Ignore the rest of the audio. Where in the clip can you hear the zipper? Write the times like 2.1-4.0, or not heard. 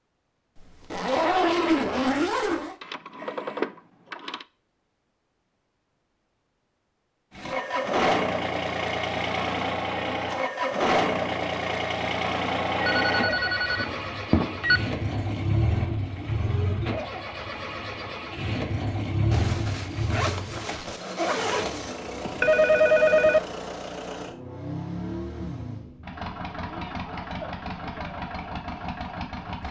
0.6-2.8, 19.3-21.9.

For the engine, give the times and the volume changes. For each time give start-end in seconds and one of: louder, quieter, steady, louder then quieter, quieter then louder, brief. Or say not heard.
7.3-29.6 quieter.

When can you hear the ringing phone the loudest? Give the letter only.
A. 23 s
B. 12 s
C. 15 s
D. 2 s
A.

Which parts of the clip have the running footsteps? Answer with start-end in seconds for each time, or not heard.
not heard.